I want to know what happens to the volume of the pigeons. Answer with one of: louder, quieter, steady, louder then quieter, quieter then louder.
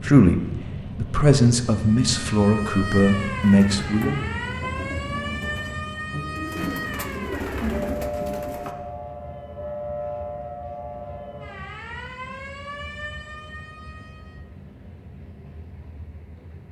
louder.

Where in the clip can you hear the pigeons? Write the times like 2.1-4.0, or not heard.
3.4-8.8.